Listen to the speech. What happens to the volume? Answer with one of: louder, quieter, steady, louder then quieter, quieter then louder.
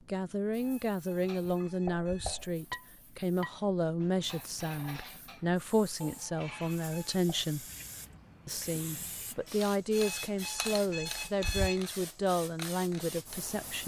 steady.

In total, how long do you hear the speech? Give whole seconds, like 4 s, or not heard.
13 s.